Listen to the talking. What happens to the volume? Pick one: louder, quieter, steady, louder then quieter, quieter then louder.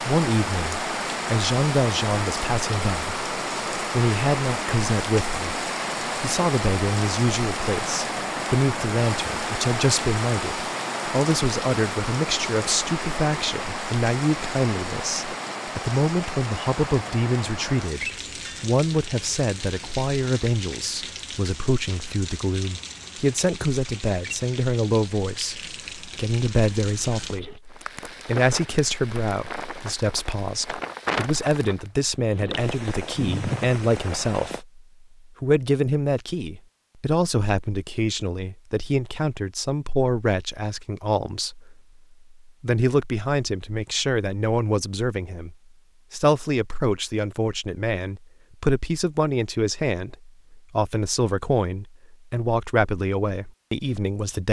steady.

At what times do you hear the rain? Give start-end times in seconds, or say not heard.
0.0-34.6.